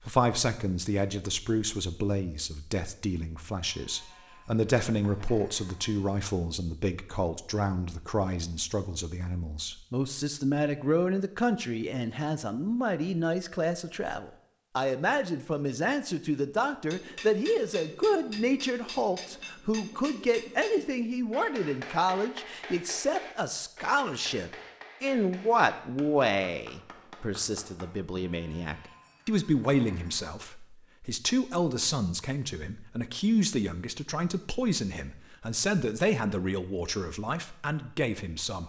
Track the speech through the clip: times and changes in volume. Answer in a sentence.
The speech can be heard from 0.1 to 38.6 s, at a steady volume.